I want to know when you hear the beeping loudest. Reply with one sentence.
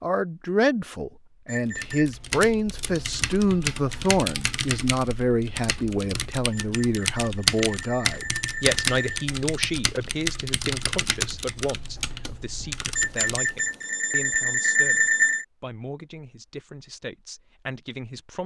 The loudest moment of the beeping is at 15 seconds.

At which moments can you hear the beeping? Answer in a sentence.
The beeping can be heard from 1.4 to 2.1 s, from 6.5 to 9.2 s and from 12.9 to 15.4 s.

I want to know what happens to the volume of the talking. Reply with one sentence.
The loudness of the talking goes down.